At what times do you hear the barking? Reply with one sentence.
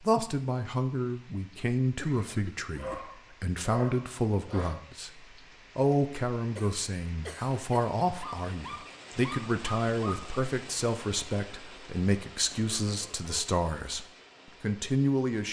The barking can be heard from 2.8 to 4.8 s and from 8.2 to 10.2 s.